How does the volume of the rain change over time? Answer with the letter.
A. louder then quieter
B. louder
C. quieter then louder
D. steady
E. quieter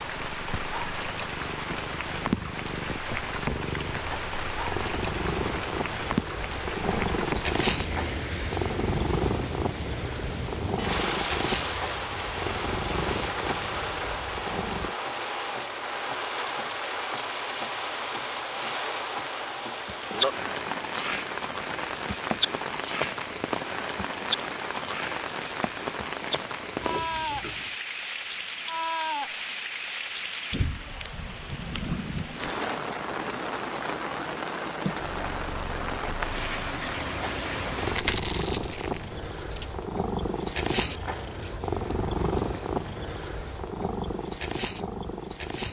D.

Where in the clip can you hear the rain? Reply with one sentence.
The rain can be heard from 0.0 to 38.0 s.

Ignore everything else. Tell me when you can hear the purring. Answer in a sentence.
You can hear the purring from 0.0 to 14.9 s and from 35.0 to 45.6 s.